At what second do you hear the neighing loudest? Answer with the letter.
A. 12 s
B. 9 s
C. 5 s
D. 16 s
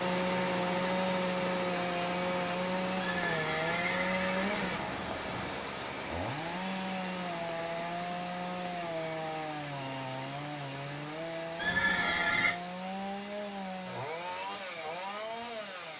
A.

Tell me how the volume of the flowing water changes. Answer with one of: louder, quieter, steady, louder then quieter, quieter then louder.
quieter.